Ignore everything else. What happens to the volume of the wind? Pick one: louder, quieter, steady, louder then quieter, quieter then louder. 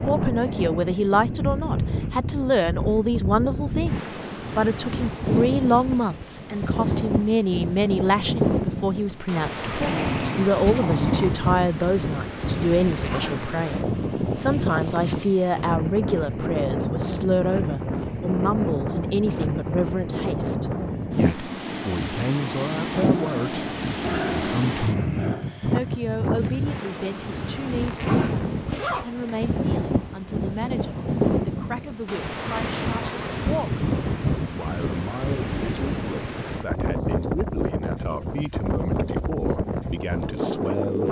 steady.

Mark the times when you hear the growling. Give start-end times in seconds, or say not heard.
9.8-11.4, 22.9-25.4.